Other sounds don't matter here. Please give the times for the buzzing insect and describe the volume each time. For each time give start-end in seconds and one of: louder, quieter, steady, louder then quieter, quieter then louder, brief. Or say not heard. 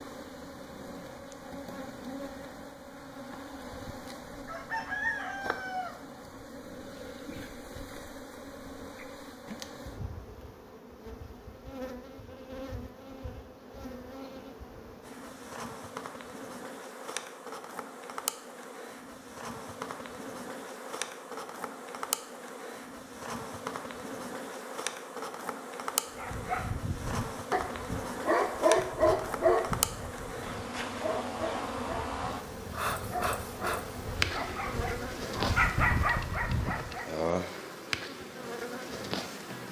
0.0-39.6 louder.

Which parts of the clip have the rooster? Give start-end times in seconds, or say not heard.
4.5-6.5.